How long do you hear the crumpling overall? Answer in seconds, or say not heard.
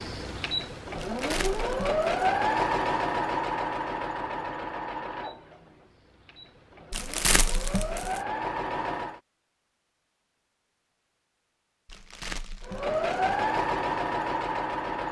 4 s.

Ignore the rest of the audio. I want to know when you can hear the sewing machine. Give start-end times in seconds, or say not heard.
0.0-9.2, 12.6-15.0.